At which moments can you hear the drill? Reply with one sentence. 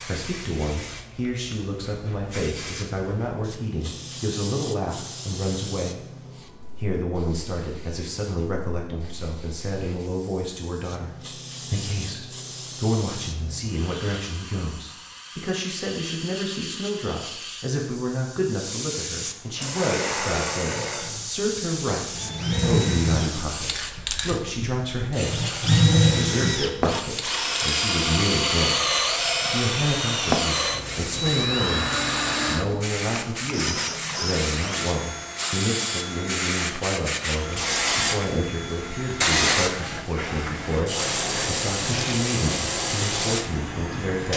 You can hear the drill from 19.6 to 44.3 s.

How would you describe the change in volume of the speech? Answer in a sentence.
The volume of the speech stays about the same.